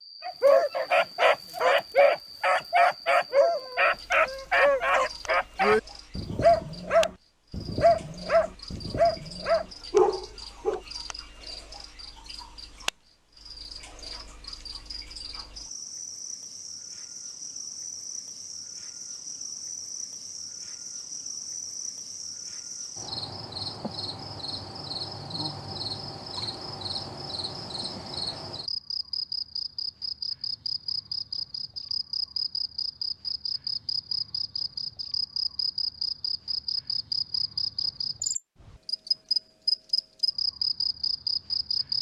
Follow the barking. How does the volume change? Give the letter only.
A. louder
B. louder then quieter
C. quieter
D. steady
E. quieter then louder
D.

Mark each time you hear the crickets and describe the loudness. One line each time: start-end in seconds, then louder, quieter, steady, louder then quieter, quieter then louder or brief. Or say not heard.
0.0-41.9 louder.